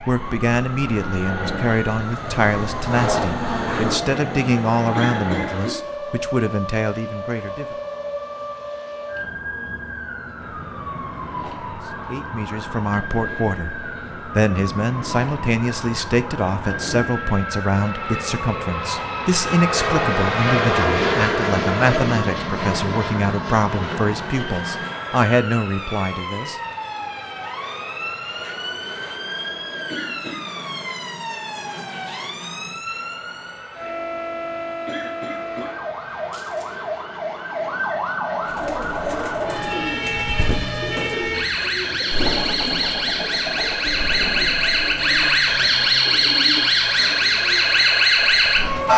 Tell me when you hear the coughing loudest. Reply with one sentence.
The volume of the coughing peaks at 5 seconds.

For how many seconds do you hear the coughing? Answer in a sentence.
You can hear the coughing for 3 seconds altogether.